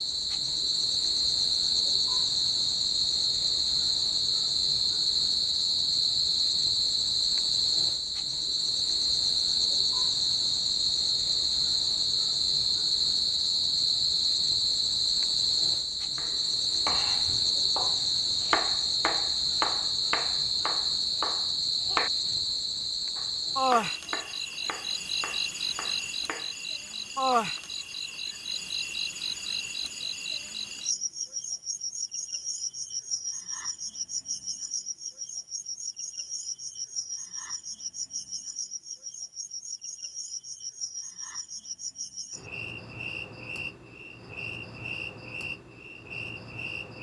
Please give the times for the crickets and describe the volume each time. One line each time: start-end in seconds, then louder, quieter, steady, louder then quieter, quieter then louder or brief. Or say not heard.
0.0-46.9 quieter.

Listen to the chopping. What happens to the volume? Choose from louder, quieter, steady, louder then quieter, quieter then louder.
quieter.